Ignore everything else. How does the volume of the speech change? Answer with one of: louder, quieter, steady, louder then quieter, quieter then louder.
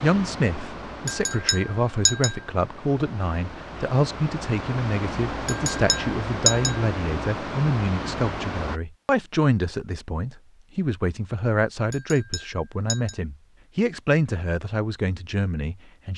steady.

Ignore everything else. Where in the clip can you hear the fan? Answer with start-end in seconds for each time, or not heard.
0.0-8.8.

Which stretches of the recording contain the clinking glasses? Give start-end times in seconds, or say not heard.
1.1-2.4, 5.5-6.8, 11.9-13.2.